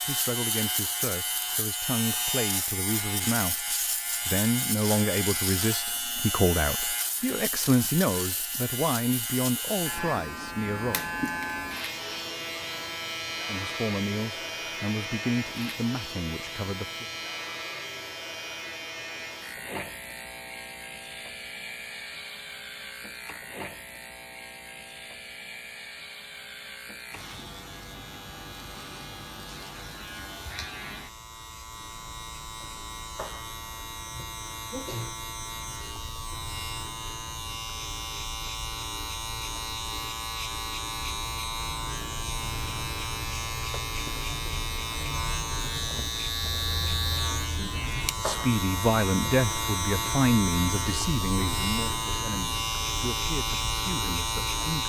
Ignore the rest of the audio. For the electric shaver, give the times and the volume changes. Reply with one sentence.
The electric shaver can be heard from 0.0 to 54.8 s, getting quieter then louder.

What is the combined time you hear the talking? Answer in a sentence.
You can hear the talking for 21 seconds altogether.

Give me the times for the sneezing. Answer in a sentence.
You can hear the sneezing from 34.1 to 35.2 s.